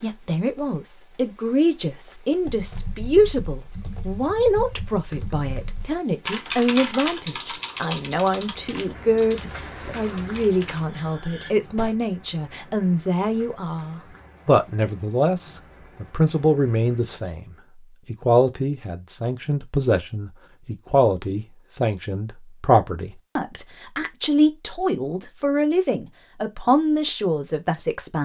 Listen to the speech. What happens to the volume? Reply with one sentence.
The loudness of the speech stays about the same.